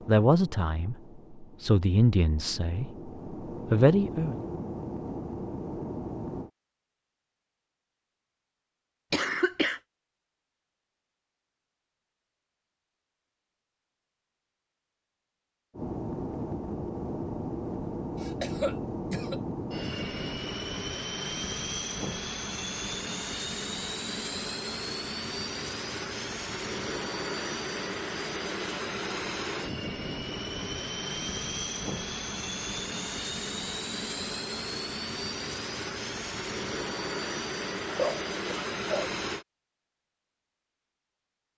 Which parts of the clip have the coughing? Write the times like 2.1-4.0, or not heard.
9.1-9.8, 18.2-19.4, 37.9-39.1.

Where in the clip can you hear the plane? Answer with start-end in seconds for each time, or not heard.
0.0-6.5, 15.7-39.5.